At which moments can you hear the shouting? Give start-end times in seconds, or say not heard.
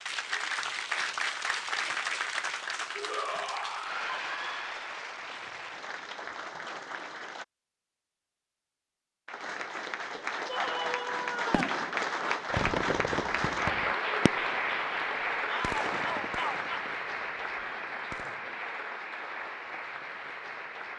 3.0-4.8, 10.4-11.8, 15.4-16.9.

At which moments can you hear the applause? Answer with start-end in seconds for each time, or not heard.
0.0-7.5, 9.2-20.9.